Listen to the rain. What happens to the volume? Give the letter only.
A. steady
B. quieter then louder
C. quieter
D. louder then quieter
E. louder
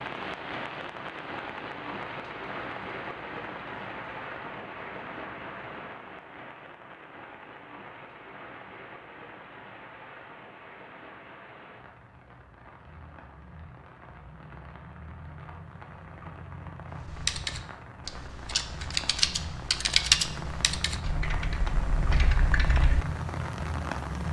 B.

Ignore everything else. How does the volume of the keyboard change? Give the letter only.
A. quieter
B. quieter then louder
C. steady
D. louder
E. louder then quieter
E.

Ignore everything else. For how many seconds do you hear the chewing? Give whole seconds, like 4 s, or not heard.
not heard.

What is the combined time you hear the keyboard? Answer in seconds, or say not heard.
6 s.